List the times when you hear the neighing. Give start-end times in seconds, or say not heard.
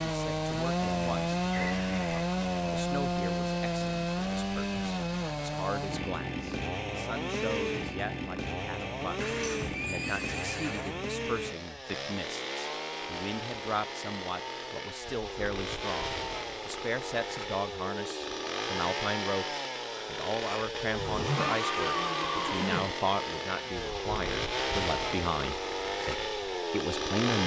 1.5-2.1, 9.2-10.9, 20.9-22.9.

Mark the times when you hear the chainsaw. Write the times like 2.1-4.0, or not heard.
0.0-27.4.